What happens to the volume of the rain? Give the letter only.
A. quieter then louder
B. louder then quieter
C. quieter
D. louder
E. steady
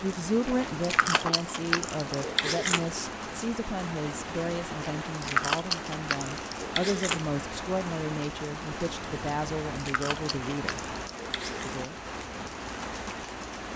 E.